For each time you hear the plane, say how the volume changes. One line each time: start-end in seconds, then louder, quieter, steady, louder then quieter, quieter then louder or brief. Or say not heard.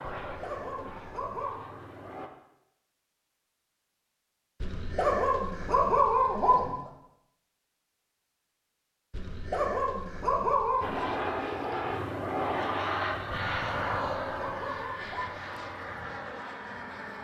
0.0-2.3 brief
10.8-17.1 quieter.